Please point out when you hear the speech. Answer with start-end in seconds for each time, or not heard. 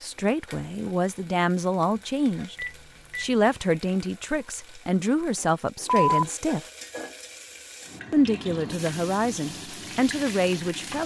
0.0-6.6, 8.1-11.0.